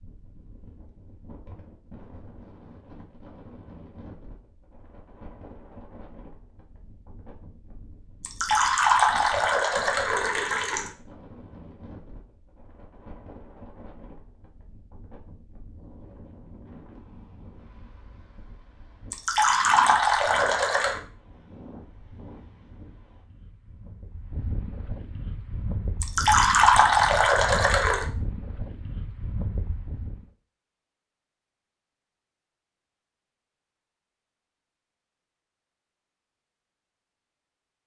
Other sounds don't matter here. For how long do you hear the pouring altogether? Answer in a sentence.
You can hear the pouring for 7 seconds altogether.